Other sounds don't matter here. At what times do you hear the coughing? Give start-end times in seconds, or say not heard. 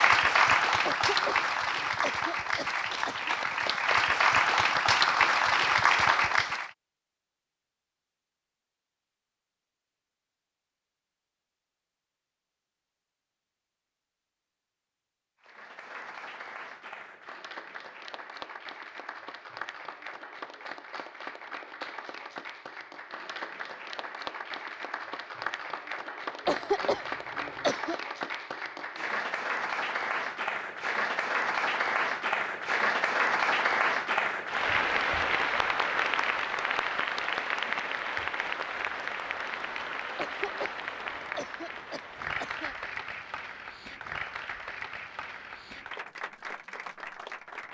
0.8-3.4, 26.4-27.9, 40.1-42.8.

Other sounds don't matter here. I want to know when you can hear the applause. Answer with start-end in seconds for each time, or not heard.
0.0-6.7, 15.4-47.6.